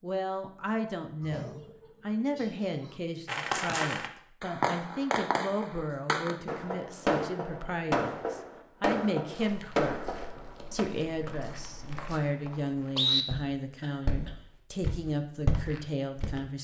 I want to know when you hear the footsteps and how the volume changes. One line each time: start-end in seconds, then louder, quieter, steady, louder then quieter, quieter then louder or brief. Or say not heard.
9.3-16.4 louder.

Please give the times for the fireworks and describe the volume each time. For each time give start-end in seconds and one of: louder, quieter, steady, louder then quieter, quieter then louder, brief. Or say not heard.
3.2-10.8 steady.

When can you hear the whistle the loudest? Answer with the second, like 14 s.
13 s.